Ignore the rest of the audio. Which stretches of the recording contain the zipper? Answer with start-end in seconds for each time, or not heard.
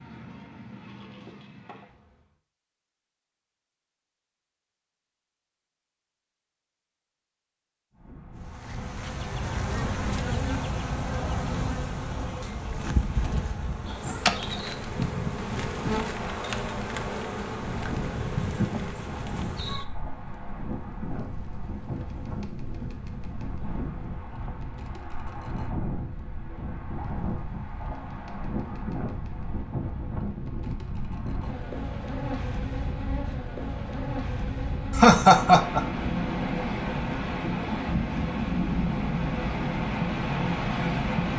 not heard.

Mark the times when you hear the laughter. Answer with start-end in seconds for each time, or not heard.
35.0-35.8.